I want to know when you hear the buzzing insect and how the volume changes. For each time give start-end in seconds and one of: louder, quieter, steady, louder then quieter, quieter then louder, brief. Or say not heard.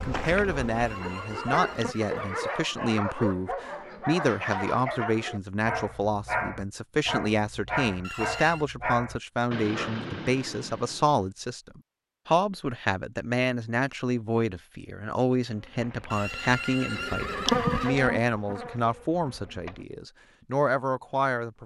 0.0-1.9 brief
15.4-19.9 louder then quieter.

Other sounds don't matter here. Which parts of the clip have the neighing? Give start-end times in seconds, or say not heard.
0.8-2.8, 8.0-8.7, 16.1-17.9.